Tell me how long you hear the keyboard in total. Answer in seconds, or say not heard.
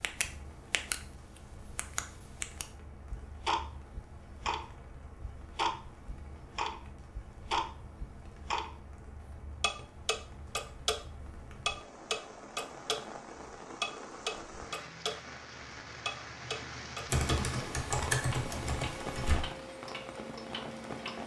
2 s.